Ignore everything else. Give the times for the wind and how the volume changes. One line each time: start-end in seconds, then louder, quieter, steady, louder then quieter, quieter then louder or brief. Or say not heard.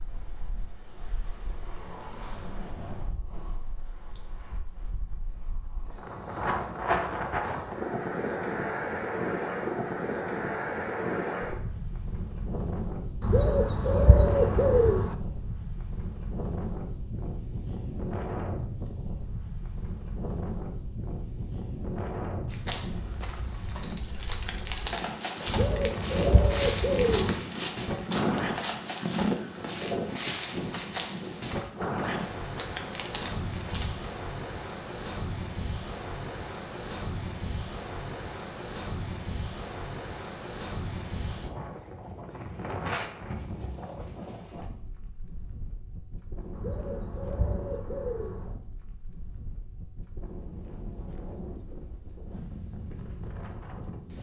0.0-54.1 quieter.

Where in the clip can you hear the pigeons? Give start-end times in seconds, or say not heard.
13.2-15.2, 25.4-27.4, 46.5-48.5.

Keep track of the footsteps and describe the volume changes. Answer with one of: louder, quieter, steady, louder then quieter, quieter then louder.
louder then quieter.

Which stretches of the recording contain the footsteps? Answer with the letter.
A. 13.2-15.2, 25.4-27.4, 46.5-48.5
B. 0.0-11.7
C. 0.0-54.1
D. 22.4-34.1
D.